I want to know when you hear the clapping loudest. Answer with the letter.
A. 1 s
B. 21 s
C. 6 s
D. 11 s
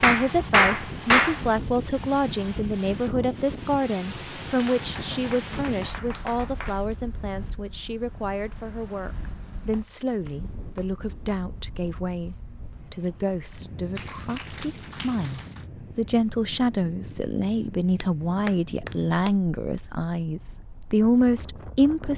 A.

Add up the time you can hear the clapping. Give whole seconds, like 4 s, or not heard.
8 s.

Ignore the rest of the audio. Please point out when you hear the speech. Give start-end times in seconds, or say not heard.
0.0-22.1.